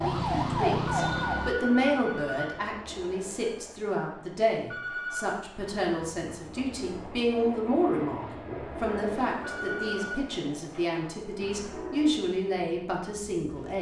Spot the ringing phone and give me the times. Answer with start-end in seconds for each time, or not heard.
1.0-2.6, 4.7-5.3, 9.4-10.2.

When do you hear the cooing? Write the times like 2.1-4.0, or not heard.
not heard.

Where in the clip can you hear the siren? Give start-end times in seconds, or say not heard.
0.0-1.6.